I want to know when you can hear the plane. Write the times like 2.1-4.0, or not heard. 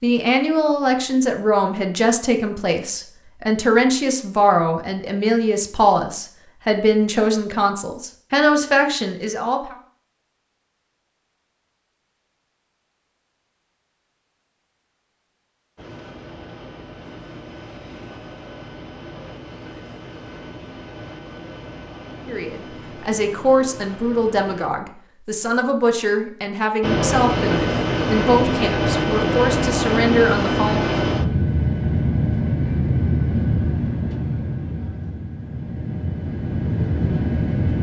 15.8-24.7, 26.8-37.7.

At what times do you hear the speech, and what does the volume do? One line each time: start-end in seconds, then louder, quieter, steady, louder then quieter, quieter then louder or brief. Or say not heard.
0.0-9.8 steady
22.2-30.9 steady.